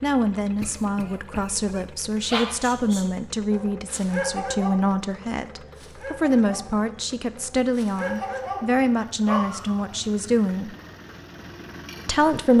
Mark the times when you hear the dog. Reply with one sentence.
You can hear the dog from 2.3 to 9.8 s.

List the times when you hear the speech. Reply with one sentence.
The speech can be heard from 0.0 to 10.8 s and from 12.1 to 12.5 s.